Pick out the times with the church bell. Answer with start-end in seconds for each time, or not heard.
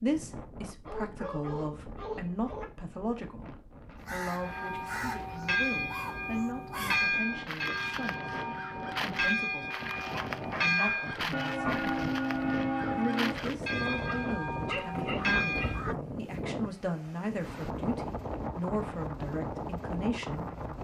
4.3-15.8.